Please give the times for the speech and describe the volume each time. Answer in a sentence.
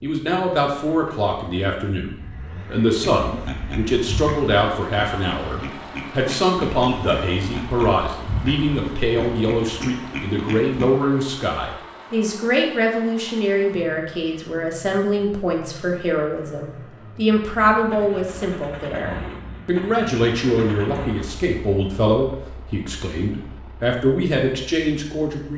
You can hear the speech from 0.0 to 25.5 s, at a steady volume.